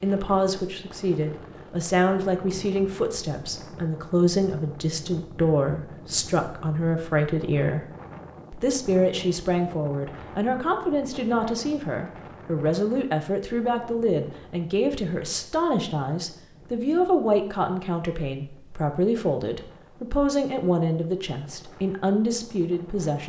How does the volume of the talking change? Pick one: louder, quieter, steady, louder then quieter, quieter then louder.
steady.